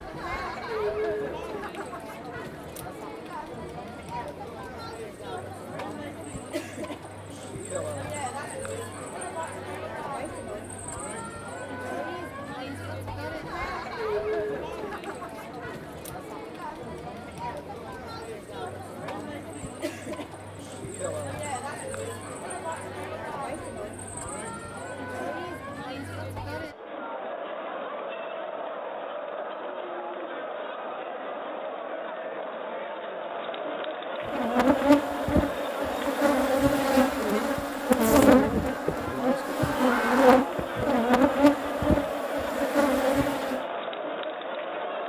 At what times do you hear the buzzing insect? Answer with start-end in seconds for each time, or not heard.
34.2-43.6.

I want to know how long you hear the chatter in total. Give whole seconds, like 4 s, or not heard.
45 s.